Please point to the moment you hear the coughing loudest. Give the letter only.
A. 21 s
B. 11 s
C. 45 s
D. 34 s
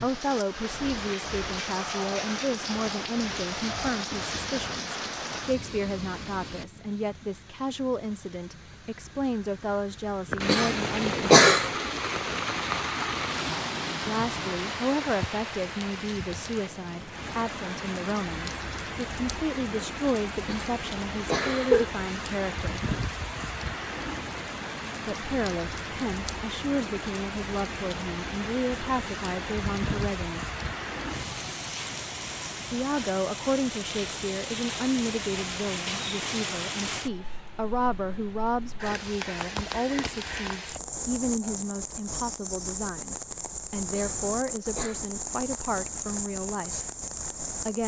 B.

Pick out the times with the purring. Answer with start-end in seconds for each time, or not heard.
not heard.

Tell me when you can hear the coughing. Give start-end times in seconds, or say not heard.
10.4-11.7, 20.4-21.9, 43.9-45.0.